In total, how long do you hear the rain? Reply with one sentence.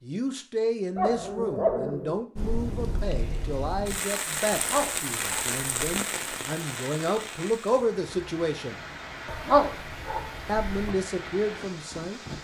You can hear the rain for 10 seconds altogether.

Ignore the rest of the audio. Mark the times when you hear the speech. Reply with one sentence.
The speech can be heard from 0.0 to 8.8 s and from 10.4 to 12.2 s.